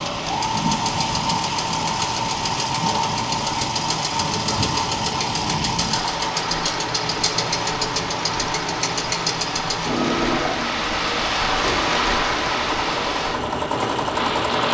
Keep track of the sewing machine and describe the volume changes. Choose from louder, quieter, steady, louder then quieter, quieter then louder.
steady.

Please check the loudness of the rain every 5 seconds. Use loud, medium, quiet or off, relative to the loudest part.
medium, medium, loud.